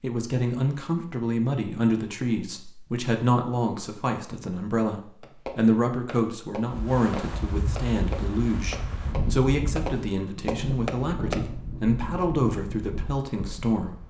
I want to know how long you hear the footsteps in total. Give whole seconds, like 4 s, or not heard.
not heard.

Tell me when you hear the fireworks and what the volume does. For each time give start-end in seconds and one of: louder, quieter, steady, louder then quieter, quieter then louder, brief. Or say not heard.
5.2-11.4 louder.